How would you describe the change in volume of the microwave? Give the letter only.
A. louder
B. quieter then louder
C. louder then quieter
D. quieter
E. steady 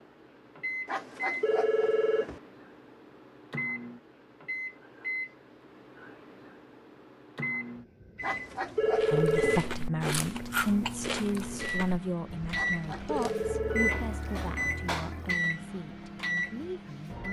A.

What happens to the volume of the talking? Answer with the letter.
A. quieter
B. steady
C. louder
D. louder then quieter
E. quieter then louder
A.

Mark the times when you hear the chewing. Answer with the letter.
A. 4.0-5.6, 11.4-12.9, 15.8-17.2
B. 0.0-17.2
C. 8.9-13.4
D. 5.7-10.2
C.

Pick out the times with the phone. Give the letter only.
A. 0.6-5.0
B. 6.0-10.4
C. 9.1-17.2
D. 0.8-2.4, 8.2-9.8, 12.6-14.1
D.